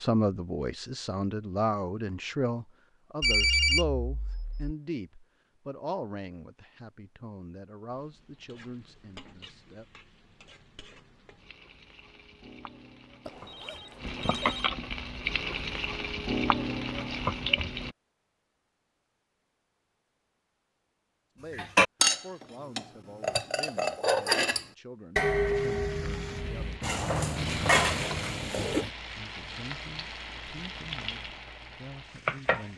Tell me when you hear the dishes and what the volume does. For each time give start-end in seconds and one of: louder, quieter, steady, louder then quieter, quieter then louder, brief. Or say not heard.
21.5-28.9 quieter then louder.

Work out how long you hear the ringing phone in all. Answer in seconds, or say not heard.
5 s.